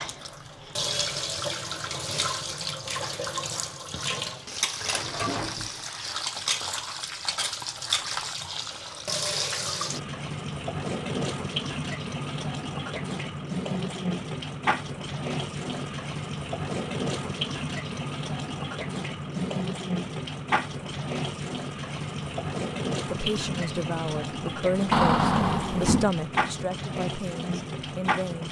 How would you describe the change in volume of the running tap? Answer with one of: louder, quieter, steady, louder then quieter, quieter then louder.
steady.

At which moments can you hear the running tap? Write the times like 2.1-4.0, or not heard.
0.0-28.4.